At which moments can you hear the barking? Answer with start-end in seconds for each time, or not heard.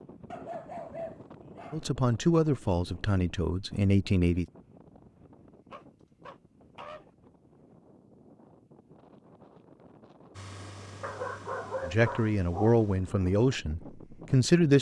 0.3-1.8, 5.7-7.0, 11.0-13.3.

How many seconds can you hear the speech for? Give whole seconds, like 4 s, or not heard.
6 s.